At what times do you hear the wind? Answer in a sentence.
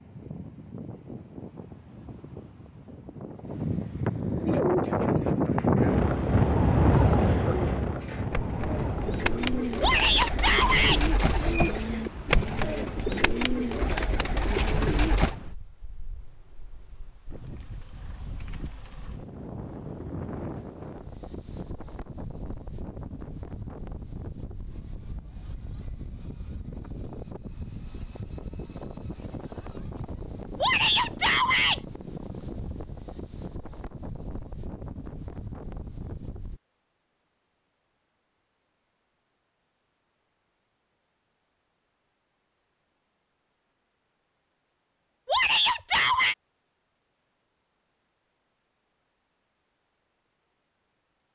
You can hear the wind from 0.0 to 36.6 s.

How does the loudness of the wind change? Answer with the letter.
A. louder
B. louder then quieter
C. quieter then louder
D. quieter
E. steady
D.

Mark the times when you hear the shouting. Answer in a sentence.
The shouting can be heard from 9.8 to 11.0 s, from 30.6 to 31.8 s and from 45.2 to 46.4 s.